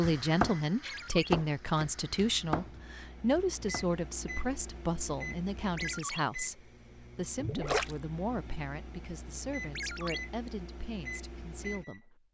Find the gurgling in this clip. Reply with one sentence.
The gurgling can be heard from 7.3 to 8.0 s.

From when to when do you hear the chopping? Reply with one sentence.
You can hear the chopping from 0.0 to 3.9 s.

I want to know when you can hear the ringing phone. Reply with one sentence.
You can hear the ringing phone from 0.8 to 1.3 s, from 5.8 to 6.2 s and from 9.8 to 10.2 s.